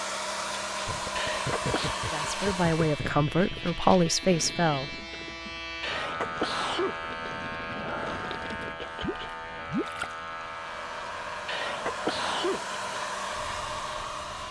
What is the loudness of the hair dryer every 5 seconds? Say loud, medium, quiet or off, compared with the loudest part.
loud, off, loud.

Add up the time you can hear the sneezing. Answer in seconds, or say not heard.
3 s.